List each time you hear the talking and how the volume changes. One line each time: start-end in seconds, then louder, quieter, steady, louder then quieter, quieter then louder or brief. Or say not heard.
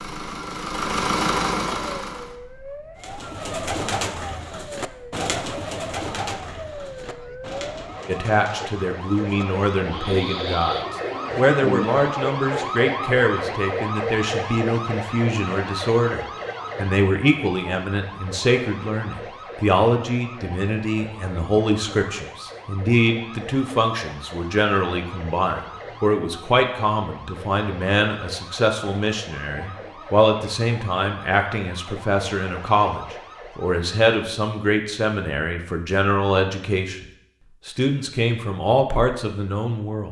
8.1-37.0 steady
37.6-40.0 brief.